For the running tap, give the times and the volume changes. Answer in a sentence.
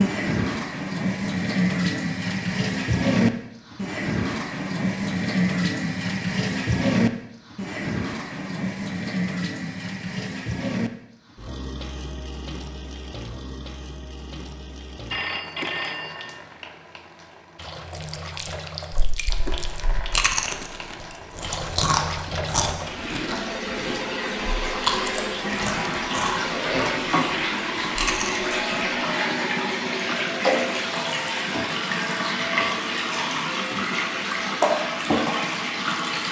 The running tap can be heard from 0.0 to 36.2 s, getting quieter then louder.